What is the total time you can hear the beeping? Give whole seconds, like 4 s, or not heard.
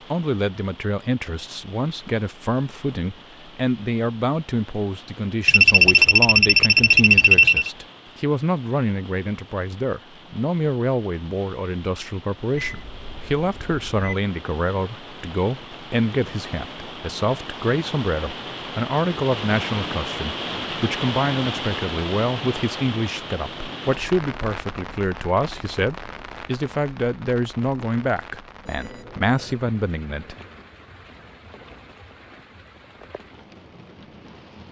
5 s.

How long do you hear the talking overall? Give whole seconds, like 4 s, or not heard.
30 s.